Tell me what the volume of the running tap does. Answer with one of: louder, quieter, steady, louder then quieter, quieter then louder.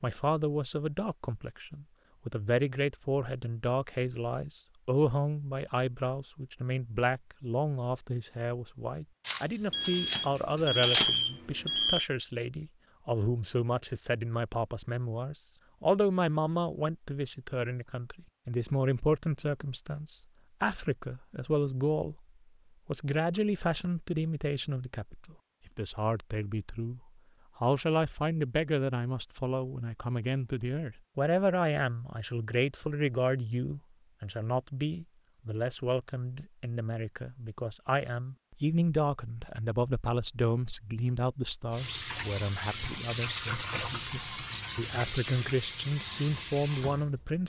steady.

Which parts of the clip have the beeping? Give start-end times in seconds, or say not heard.
9.7-12.1.